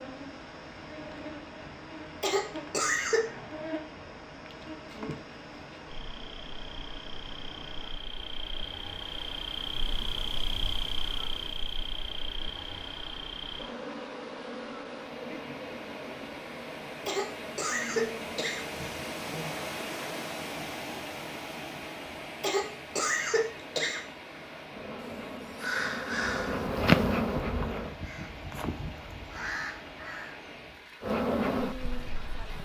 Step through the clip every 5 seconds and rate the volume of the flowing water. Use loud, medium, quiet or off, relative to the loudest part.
medium, medium, medium, loud, loud, medium, medium.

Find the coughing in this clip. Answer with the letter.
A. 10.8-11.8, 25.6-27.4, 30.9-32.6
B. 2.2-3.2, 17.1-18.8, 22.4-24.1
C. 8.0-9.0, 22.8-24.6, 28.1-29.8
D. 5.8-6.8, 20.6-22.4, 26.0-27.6
B.